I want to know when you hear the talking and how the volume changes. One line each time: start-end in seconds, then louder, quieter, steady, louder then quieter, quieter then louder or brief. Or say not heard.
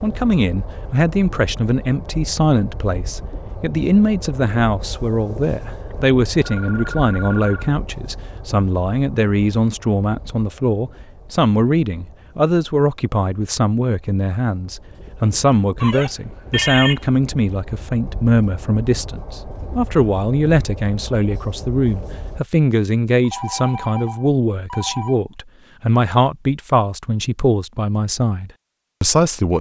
0.0-29.5 steady.